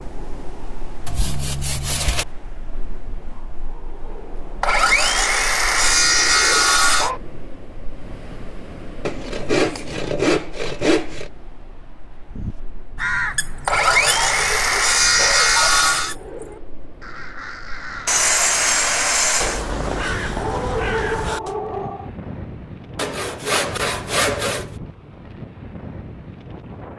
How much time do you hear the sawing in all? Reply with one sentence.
The sawing can be heard for 12 seconds in total.